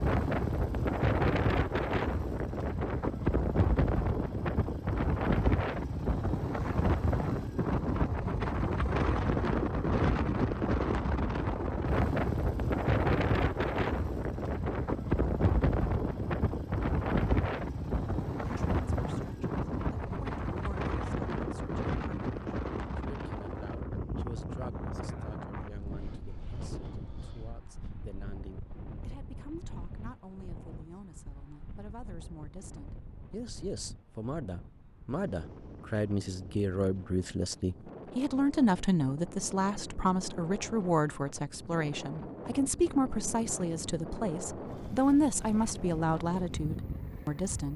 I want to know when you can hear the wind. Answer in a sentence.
The wind can be heard from 0.0 to 47.7 s.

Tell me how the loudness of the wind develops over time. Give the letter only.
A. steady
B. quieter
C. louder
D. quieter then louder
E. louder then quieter
D.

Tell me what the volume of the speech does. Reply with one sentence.
The volume of the speech goes up.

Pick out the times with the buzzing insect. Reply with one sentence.
You can't hear the buzzing insect here.